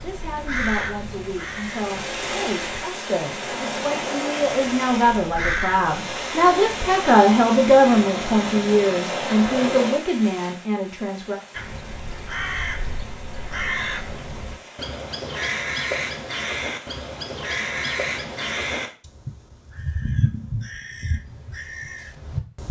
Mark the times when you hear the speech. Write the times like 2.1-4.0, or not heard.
0.0-11.4.